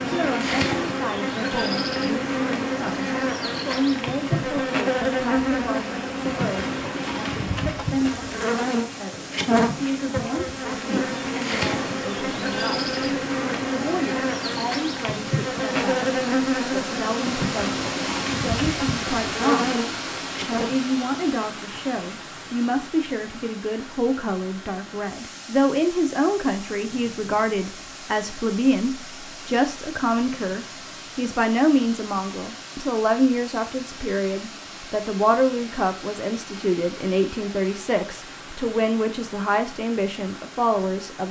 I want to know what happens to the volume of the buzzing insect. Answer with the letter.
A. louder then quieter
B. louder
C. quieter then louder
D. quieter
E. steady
E.